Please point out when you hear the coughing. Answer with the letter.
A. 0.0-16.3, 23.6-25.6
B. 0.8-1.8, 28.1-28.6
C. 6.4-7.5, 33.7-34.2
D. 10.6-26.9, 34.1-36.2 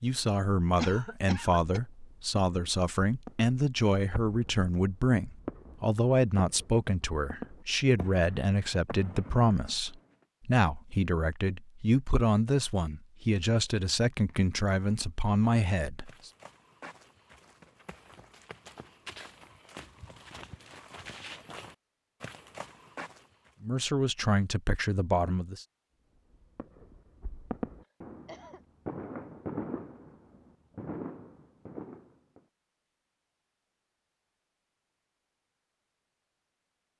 B.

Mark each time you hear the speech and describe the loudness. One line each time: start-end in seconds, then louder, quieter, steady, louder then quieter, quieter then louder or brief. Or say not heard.
0.0-16.3 steady
23.6-25.6 brief.